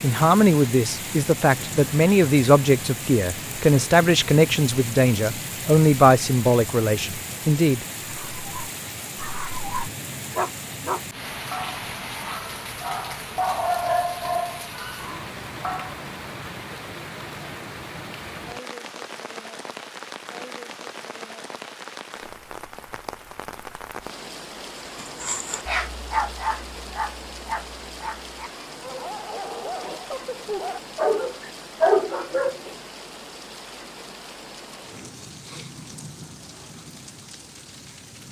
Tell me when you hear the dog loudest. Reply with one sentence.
The loudest moment of the dog is at 32 seconds.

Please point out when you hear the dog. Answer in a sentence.
You can hear the dog from 8.0 to 16.0 s and from 24.9 to 32.7 s.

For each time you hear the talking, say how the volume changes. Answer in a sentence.
The talking can be heard from 0.0 to 7.8 s, at a steady volume.